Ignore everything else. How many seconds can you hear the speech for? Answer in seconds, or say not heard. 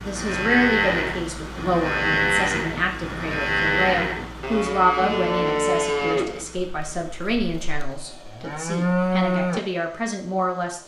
11 s.